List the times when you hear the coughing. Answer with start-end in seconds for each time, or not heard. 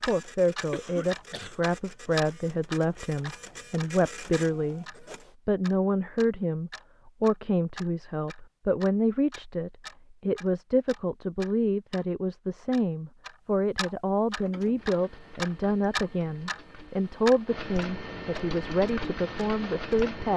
0.7-1.6.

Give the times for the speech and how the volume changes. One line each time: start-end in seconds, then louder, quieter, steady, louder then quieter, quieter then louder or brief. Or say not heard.
0.1-20.3 steady.